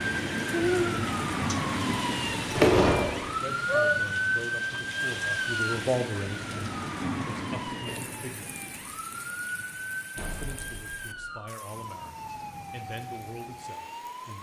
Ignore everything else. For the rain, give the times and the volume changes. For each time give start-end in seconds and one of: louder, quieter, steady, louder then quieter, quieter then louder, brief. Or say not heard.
0.0-14.3 quieter.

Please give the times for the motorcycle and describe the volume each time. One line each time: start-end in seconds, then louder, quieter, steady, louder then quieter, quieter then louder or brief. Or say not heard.
not heard.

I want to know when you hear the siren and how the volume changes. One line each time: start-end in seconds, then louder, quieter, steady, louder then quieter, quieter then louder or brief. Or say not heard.
0.0-14.3 quieter.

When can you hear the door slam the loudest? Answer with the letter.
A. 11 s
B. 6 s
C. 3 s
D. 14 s
C.